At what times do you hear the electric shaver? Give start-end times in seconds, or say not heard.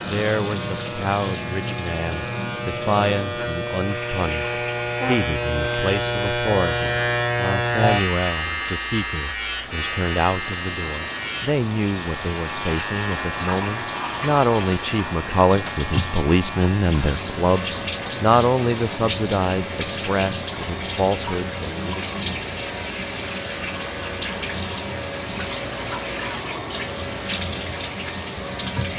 0.0-28.9.